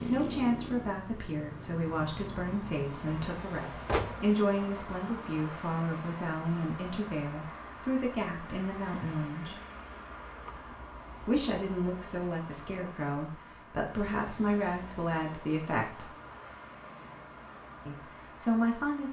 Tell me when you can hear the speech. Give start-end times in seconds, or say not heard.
0.0-9.6, 11.2-16.1, 17.9-19.0.